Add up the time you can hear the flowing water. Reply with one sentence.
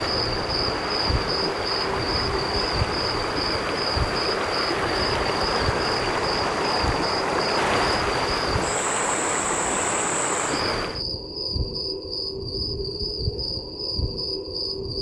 You can hear the flowing water for 11 seconds altogether.